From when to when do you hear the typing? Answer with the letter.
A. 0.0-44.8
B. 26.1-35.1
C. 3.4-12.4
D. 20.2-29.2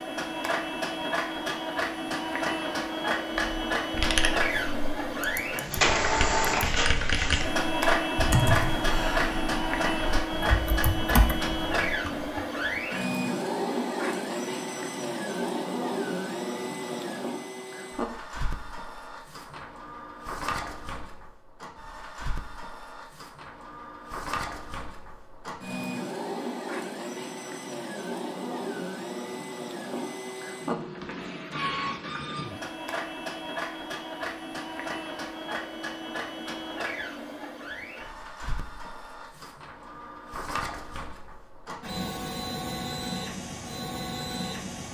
C.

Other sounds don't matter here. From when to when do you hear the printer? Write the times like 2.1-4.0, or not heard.
0.0-44.8.